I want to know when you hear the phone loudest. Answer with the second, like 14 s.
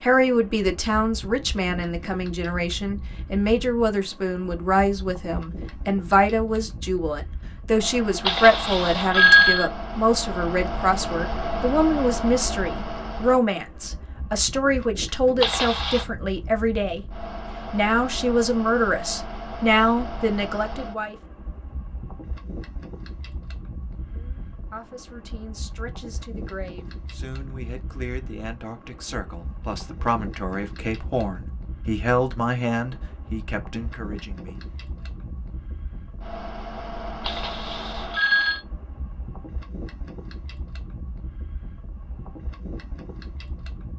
9 s.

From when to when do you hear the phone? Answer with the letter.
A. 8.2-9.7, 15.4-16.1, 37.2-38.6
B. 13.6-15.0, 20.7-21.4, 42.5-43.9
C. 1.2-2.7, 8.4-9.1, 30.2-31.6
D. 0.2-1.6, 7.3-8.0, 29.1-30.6
A.